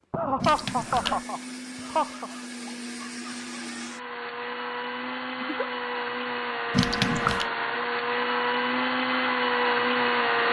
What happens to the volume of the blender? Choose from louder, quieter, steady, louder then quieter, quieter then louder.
louder.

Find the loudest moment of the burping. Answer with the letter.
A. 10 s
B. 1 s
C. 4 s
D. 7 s
D.